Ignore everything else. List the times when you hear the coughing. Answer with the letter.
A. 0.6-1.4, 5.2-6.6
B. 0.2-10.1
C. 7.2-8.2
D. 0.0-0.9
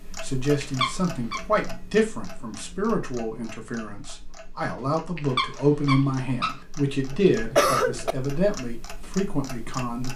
C.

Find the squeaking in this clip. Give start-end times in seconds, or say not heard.
0.6-1.4, 5.2-6.6.